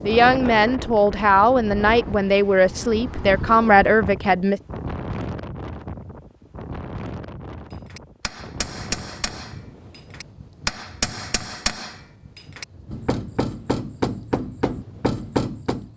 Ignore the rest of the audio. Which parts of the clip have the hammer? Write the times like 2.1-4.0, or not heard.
7.7-15.9.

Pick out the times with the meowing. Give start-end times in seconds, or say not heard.
not heard.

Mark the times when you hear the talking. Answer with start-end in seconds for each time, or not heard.
0.0-4.6.